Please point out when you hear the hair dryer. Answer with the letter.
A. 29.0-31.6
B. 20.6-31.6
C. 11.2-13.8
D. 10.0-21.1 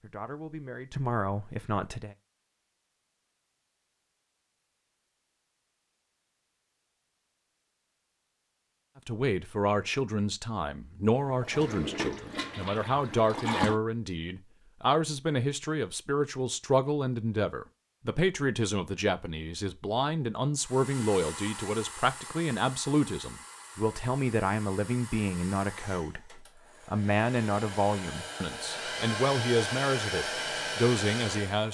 B.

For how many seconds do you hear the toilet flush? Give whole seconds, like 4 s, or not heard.
3 s.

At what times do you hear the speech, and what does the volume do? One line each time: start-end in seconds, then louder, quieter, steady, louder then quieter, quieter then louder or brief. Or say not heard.
0.0-2.1 brief
9.1-31.6 steady.